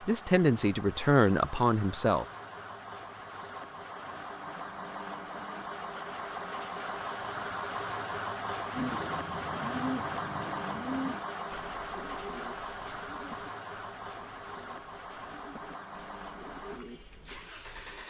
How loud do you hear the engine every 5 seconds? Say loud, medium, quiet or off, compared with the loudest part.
medium, loud, loud, medium.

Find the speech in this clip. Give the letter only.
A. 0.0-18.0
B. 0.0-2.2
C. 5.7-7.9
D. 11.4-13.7
B.